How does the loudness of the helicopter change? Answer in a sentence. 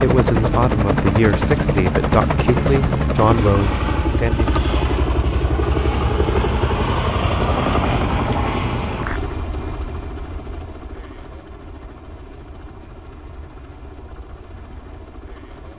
The volume of the helicopter goes down.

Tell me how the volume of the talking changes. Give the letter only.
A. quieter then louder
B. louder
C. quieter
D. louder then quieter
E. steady
E.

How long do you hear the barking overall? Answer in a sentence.
The barking can't be heard in this clip.